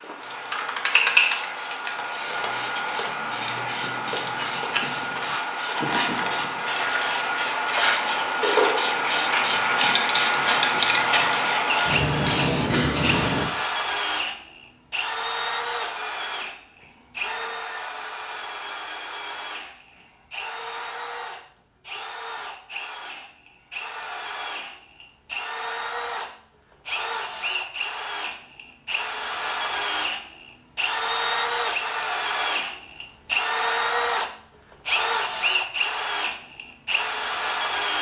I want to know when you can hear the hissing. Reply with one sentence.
The hissing can be heard from 0.0 to 13.5 s.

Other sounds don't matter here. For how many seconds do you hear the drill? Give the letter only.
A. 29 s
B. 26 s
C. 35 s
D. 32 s
B.